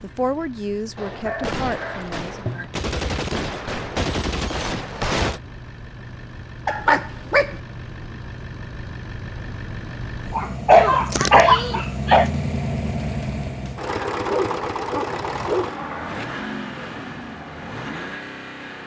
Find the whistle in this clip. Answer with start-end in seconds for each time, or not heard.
not heard.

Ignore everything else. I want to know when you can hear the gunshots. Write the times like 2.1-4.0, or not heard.
0.9-5.4.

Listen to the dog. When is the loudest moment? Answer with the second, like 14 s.
11 s.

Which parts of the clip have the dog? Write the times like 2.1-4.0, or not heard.
1.0-2.7, 6.7-7.5, 10.3-12.3, 14.2-15.8.